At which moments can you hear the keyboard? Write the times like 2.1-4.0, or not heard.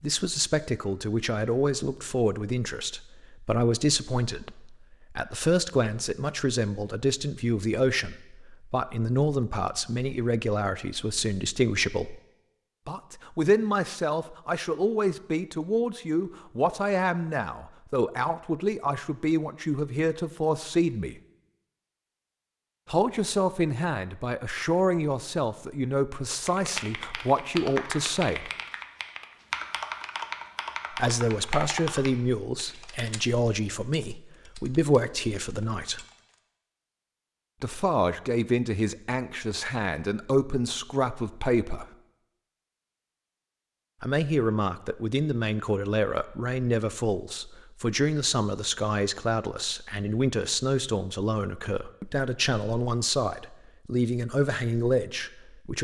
26.4-36.4.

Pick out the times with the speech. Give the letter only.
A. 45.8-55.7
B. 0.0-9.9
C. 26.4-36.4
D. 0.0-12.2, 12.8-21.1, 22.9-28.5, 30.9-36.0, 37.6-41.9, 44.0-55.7
D.